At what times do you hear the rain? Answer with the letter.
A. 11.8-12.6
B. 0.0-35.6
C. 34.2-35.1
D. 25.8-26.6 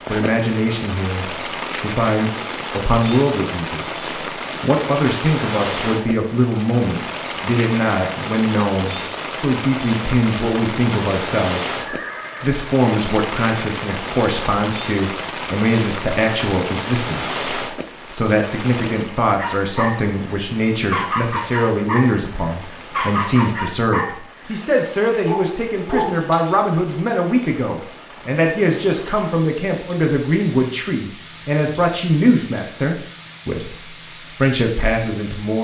B.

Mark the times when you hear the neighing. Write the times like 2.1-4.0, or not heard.
11.8-12.6.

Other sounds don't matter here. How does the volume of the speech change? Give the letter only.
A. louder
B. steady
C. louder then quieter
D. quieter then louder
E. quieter
B.